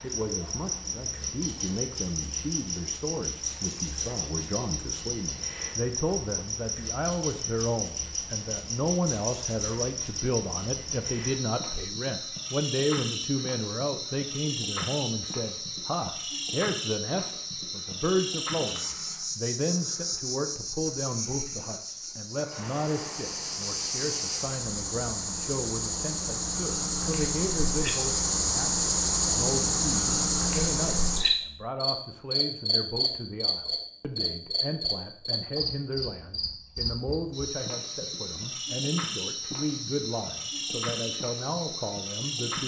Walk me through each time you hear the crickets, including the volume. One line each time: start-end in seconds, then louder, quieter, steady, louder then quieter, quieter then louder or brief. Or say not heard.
0.0-42.6 louder then quieter.